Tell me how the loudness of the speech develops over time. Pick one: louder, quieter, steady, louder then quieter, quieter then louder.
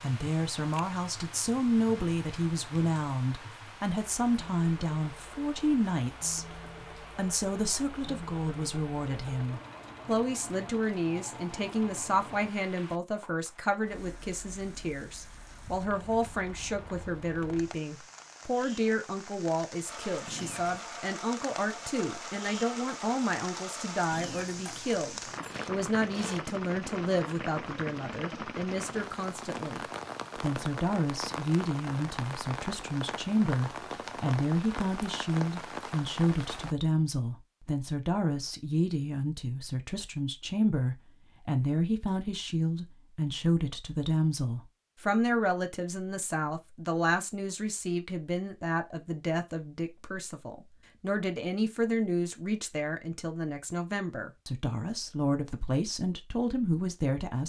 steady.